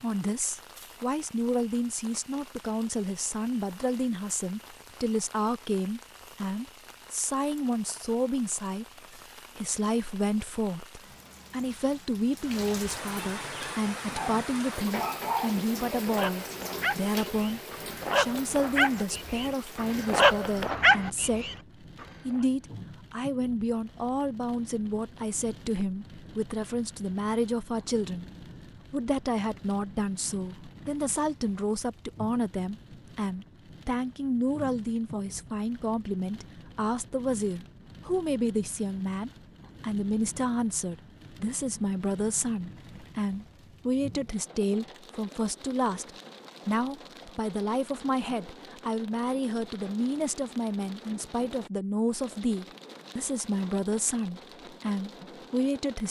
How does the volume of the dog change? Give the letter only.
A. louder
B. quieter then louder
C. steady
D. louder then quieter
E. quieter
A.